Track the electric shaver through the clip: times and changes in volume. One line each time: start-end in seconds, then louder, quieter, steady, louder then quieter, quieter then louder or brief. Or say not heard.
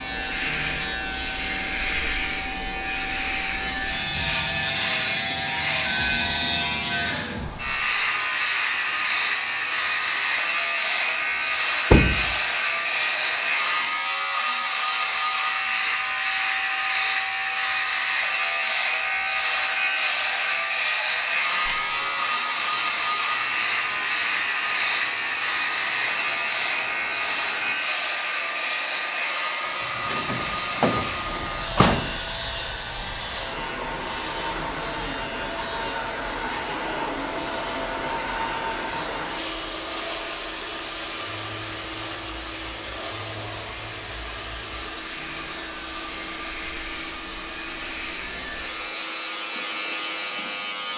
0.0-50.9 quieter.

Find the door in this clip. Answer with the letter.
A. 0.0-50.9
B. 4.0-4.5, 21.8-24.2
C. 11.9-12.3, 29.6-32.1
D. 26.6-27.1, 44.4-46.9
C.